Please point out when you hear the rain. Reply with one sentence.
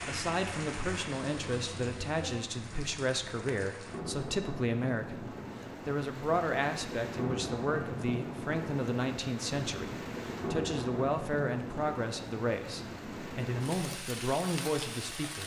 The rain can be heard from 0.0 to 15.4 s.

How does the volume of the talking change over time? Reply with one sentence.
The volume of the talking stays about the same.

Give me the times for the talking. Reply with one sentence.
The talking can be heard from 0.1 to 15.4 s.